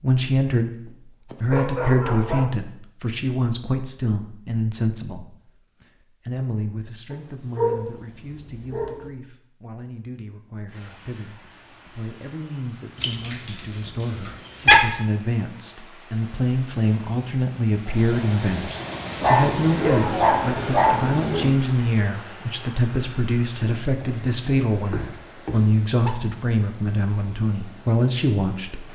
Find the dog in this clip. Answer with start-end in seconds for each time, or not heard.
0.8-2.5, 7.1-9.1, 13.0-14.8, 19.2-21.6, 23.6-26.1.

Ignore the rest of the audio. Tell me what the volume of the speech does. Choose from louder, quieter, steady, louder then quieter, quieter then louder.
quieter then louder.